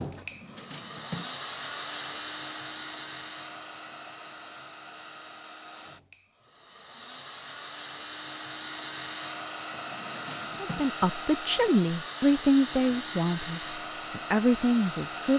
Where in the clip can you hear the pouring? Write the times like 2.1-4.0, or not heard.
not heard.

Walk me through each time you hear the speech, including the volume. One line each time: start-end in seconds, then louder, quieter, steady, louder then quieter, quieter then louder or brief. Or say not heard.
10.6-15.3 quieter then louder.